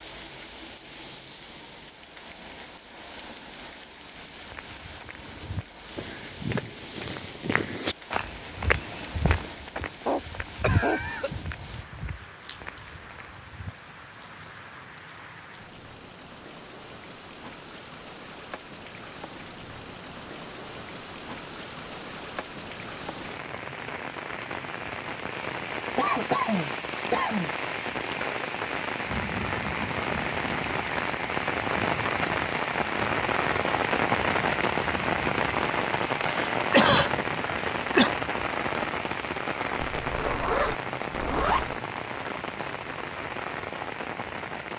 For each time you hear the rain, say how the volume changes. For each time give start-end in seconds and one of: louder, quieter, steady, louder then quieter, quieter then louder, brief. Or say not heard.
0.0-44.7 louder.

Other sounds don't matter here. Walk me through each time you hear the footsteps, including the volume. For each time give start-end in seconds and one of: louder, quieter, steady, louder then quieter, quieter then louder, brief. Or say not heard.
4.3-13.8 louder then quieter.